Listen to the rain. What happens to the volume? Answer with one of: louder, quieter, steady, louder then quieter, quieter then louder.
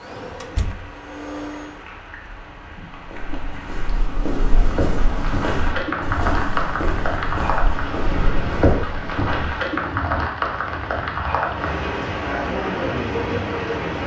louder.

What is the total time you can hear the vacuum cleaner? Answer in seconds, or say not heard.
2 s.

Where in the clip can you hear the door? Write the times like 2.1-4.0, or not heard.
0.4-0.9.